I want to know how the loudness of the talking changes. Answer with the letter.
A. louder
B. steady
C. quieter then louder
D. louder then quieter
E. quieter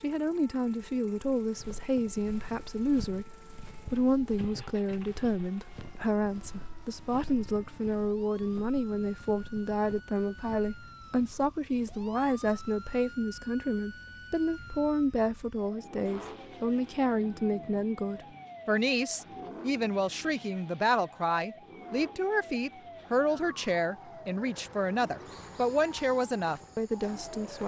B.